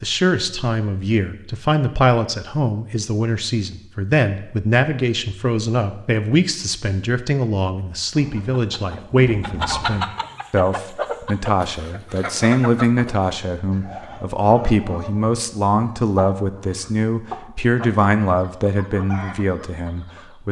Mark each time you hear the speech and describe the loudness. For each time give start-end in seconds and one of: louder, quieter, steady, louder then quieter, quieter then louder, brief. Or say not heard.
0.0-20.4 steady.